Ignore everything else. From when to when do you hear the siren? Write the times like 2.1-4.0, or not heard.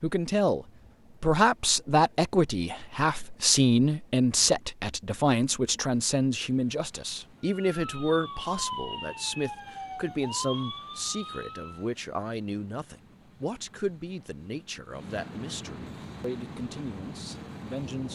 7.4-11.8.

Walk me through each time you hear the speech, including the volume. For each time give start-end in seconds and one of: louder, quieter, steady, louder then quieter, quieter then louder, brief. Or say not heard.
0.0-18.0 quieter.